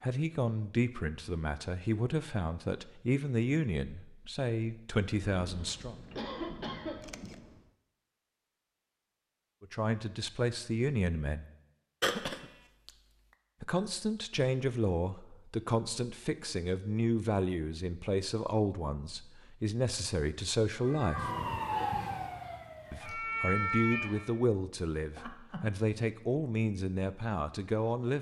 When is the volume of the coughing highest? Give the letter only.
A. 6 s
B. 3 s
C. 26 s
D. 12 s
D.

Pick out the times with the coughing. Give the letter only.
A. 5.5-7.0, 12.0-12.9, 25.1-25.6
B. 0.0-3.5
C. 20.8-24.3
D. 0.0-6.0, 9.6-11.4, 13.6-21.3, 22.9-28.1
A.